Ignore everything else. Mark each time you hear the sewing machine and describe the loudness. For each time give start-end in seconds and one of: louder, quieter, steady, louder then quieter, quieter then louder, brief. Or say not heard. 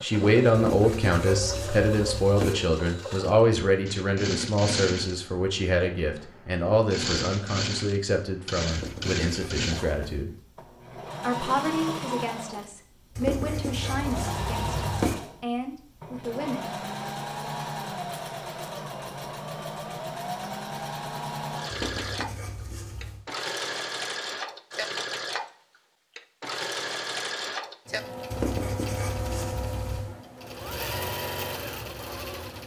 0.0-32.6 steady.